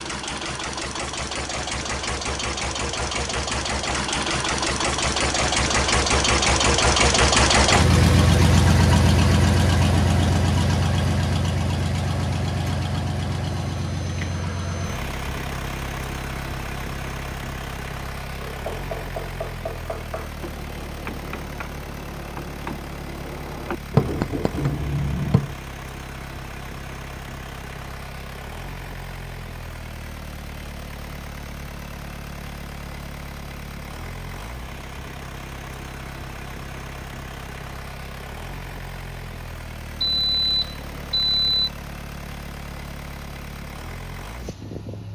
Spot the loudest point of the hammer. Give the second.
24 s.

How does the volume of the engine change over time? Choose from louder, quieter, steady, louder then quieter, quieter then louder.
quieter.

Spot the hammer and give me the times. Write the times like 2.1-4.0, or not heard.
18.4-25.6.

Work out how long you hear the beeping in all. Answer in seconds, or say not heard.
3 s.